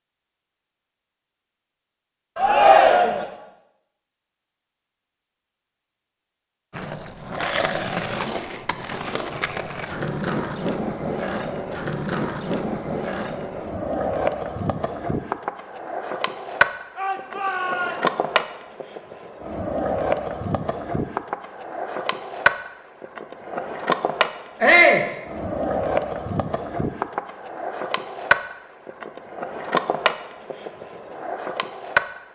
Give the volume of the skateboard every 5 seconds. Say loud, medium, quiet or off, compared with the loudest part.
off, loud, loud, loud, loud, loud, loud.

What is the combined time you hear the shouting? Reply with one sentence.
The shouting can be heard for 3 seconds in total.